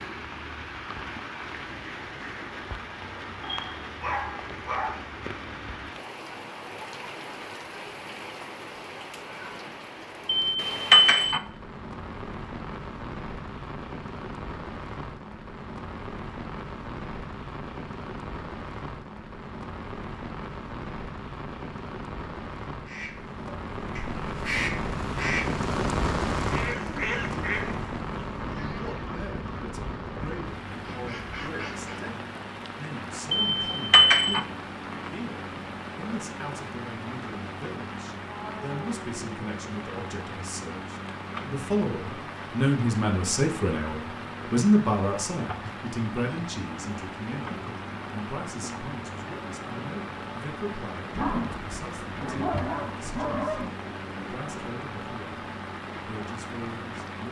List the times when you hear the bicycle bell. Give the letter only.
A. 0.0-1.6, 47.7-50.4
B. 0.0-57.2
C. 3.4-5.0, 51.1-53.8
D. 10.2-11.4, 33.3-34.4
D.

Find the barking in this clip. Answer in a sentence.
You can hear the barking from 3.4 to 5.0 s and from 51.1 to 53.8 s.